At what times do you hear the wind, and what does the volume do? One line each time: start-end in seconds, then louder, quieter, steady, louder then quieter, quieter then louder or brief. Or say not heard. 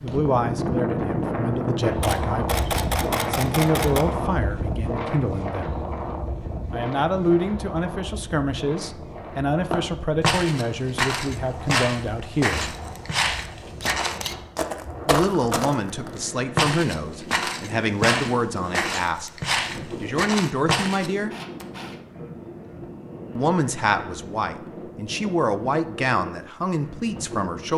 0.0-27.7 quieter.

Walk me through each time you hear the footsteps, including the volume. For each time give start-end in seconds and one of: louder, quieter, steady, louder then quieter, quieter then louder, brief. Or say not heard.
9.7-21.1 steady.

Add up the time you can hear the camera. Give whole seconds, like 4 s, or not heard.
3 s.